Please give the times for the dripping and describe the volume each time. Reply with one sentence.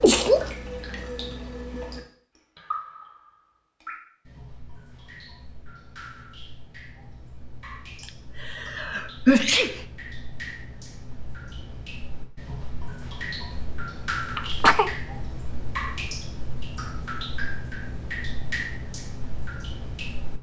The dripping can be heard from 0.0 to 20.3 s, getting quieter then louder.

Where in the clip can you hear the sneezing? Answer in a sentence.
The sneezing can be heard from 0.0 to 0.5 s, from 8.0 to 9.8 s and from 14.3 to 14.9 s.